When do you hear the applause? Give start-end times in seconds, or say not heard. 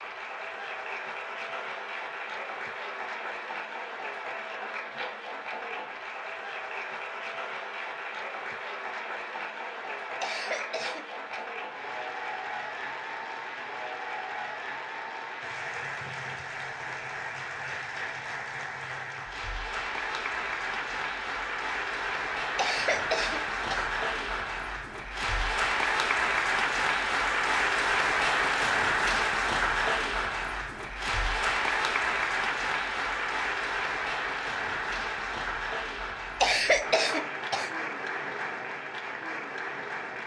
0.0-40.2.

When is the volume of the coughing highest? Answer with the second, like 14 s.
37 s.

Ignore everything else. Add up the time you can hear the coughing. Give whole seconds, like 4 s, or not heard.
4 s.